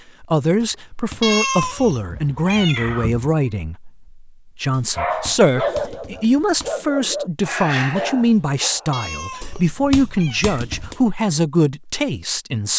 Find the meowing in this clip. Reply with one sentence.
The meowing can be heard from 1.2 to 3.5 s and from 8.9 to 10.6 s.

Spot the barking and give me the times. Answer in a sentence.
You can hear the barking from 4.9 to 9.4 s.